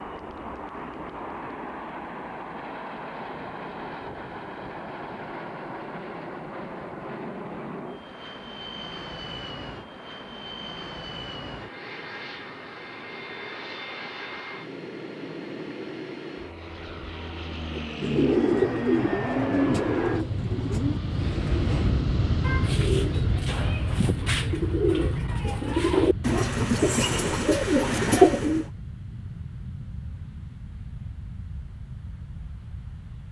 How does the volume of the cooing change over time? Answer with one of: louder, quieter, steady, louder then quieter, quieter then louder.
quieter then louder.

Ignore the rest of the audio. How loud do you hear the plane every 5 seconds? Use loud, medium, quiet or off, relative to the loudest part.
medium, medium, medium, loud, loud, medium, quiet.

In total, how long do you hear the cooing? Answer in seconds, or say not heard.
11 s.